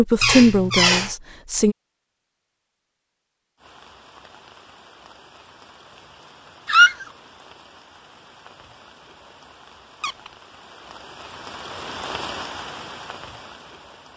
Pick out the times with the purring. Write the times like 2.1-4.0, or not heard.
not heard.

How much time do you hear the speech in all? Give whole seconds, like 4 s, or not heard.
2 s.